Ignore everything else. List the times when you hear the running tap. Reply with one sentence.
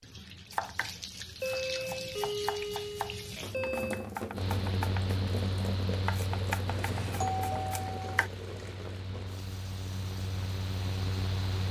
The running tap can be heard from 0.0 to 11.6 s.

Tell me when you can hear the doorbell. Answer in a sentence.
The doorbell can be heard from 1.4 to 4.1 s and from 6.7 to 8.2 s.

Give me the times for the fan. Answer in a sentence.
The fan can be heard from 4.3 to 11.6 s.